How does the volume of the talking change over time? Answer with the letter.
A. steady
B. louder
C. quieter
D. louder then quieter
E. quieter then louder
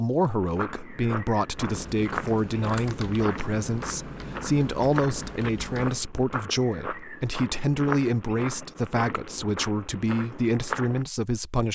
A.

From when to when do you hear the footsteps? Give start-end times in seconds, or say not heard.
0.2-11.1.